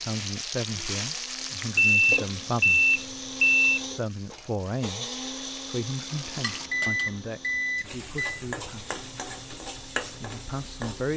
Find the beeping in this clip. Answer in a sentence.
The beeping can be heard from 1.8 to 3.8 s and from 6.1 to 8.4 s.